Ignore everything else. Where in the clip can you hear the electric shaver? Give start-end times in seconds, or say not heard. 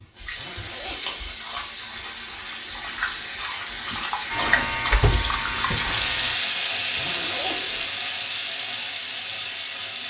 4.2-6.3.